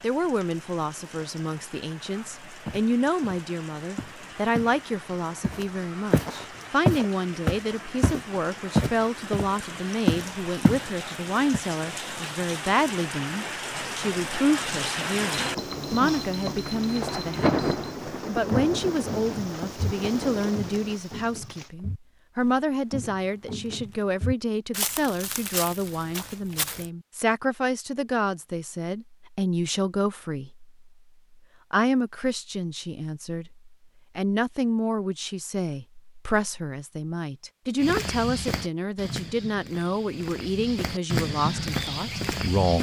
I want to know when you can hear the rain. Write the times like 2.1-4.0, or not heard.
0.0-21.7.